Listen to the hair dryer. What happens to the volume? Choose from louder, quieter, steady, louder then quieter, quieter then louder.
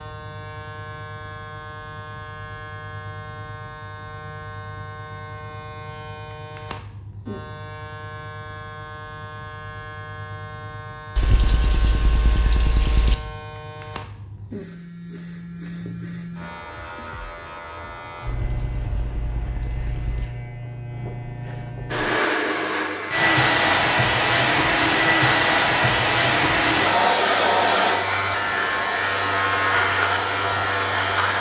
quieter.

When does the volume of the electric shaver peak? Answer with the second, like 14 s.
30 s.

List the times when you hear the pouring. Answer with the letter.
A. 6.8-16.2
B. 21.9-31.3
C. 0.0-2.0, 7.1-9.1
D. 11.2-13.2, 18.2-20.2
D.